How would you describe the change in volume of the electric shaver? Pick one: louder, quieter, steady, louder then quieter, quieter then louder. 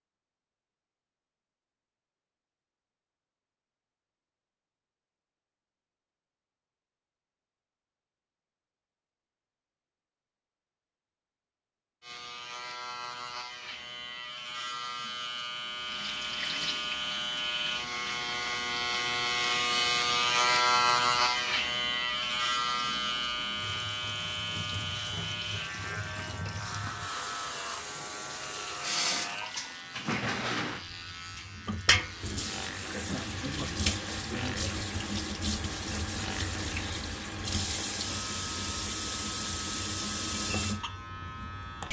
louder then quieter.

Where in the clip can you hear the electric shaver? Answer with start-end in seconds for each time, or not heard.
12.0-41.8.